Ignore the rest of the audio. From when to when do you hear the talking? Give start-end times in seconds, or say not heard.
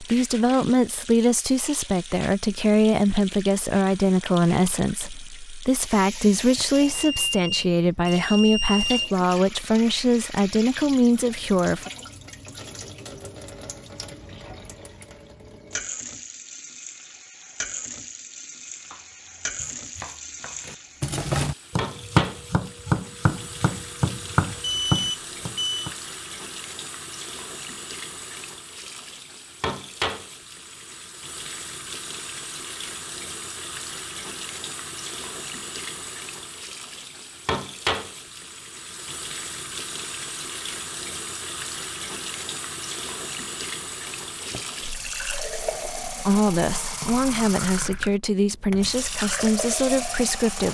0.0-11.9, 46.2-50.6.